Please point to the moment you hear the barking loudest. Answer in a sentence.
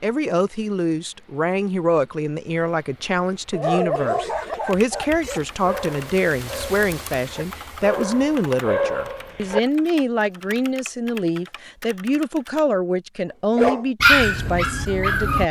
The loudest moment of the barking is at 14 seconds.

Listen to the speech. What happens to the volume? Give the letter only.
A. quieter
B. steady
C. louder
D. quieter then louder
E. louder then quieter
B.